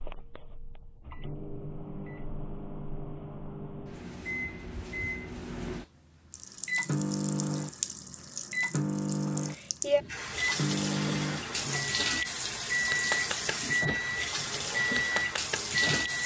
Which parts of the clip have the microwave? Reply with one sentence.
The microwave can be heard from 0.0 to 16.2 s.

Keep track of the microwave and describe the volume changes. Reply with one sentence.
The loudness of the microwave goes up.